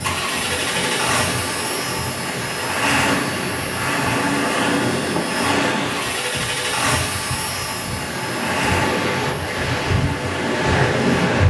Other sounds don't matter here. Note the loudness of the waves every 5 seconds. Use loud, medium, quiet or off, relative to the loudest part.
medium, medium, loud.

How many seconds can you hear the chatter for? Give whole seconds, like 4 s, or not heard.
not heard.